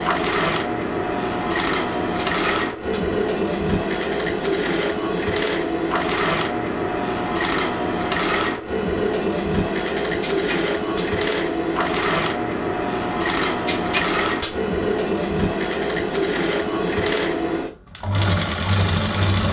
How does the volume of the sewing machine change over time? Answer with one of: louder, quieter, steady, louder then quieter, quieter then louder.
steady.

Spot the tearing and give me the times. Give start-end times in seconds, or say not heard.
1.9-3.0, 10.2-11.1, 13.4-14.5.